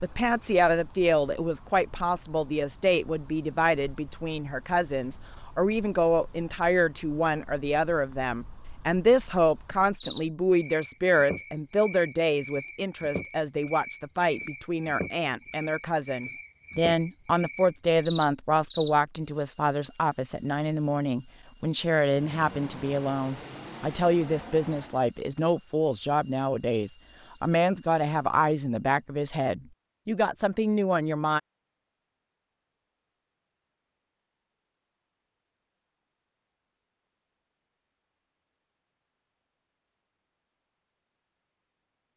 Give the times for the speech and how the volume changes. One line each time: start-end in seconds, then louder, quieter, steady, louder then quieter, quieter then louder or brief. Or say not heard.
0.0-31.4 steady.